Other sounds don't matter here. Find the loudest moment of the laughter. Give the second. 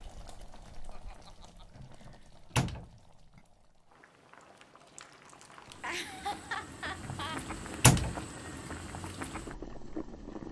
6 s.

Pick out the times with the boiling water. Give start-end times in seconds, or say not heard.
0.0-10.4.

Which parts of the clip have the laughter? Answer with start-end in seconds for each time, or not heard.
0.9-1.6, 5.7-7.4.